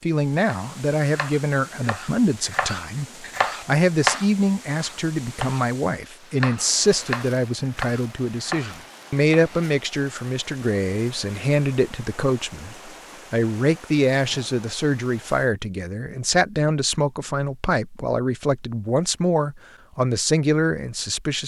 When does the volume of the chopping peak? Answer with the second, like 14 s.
4 s.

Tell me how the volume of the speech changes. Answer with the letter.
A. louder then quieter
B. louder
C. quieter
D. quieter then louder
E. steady
E.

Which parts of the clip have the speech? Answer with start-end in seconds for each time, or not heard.
0.0-21.4.